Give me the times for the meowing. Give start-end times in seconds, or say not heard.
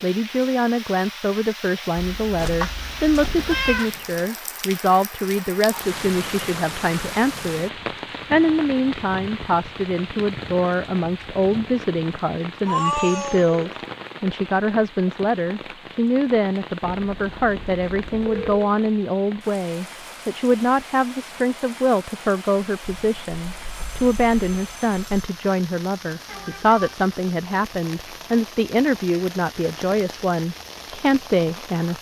2.4-4.2, 12.7-13.7, 26.2-26.9.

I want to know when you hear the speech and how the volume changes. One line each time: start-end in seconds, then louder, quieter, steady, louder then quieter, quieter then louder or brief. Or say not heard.
0.0-31.9 steady.